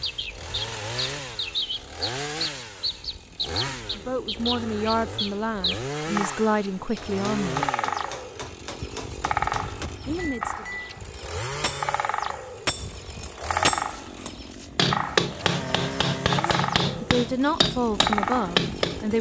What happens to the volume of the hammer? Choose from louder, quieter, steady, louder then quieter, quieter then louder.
louder.